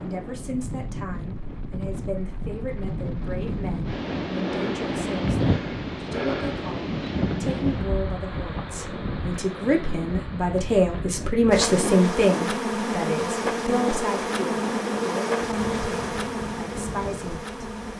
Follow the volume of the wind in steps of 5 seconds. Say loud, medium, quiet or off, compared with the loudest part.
loud, loud, medium, medium.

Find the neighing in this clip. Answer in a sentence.
The neighing can't be heard in this clip.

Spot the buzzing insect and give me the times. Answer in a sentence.
You can hear the buzzing insect from 11.5 to 17.9 s.